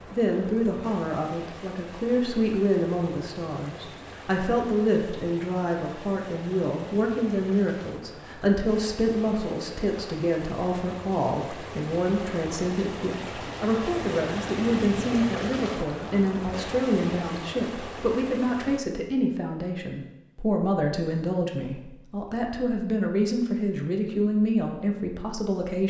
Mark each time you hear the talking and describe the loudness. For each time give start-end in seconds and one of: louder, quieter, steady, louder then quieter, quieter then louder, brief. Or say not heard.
0.1-25.8 steady.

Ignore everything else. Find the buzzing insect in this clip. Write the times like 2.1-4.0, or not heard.
not heard.